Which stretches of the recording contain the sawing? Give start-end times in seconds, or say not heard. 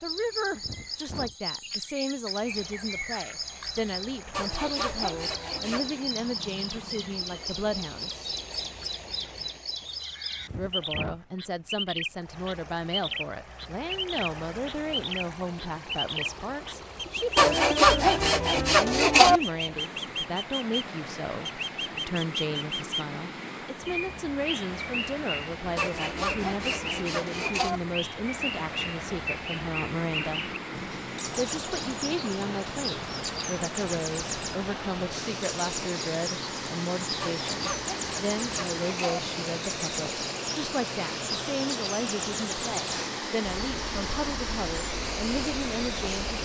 4.3-6.0, 17.4-19.4, 25.8-27.8, 37.2-39.2.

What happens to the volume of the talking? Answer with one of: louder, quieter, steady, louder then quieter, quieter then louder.
steady.